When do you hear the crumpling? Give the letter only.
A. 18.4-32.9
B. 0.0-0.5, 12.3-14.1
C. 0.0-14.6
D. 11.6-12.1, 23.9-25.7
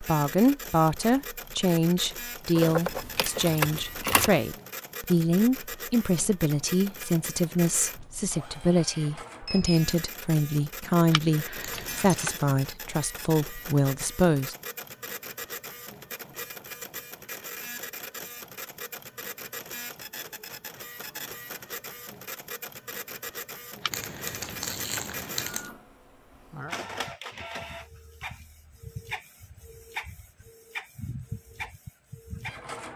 D.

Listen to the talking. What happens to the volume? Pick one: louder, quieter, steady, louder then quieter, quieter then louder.
steady.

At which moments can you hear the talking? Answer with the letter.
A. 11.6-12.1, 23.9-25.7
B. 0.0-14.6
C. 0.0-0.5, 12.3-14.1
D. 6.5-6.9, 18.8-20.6
B.